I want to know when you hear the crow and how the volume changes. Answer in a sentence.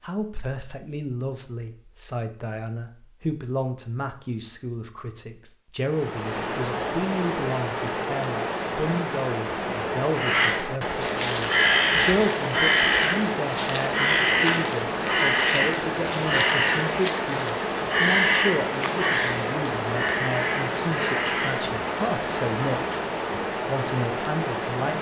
You can hear the crow from 10.2 to 21.6 s, getting quieter.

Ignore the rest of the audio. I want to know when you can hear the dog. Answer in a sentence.
The dog can't be heard in this clip.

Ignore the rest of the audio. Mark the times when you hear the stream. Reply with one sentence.
The stream can be heard from 5.8 to 24.9 s.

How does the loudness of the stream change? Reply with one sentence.
The volume of the stream stays about the same.